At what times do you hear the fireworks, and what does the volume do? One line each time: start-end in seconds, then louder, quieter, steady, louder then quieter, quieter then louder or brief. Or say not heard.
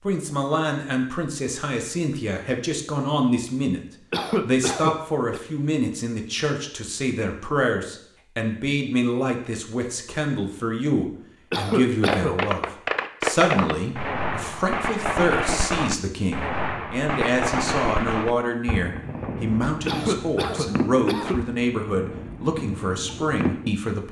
12.0-23.8 quieter.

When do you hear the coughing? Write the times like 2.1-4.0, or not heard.
4.1-5.4, 11.5-12.3, 19.9-21.4.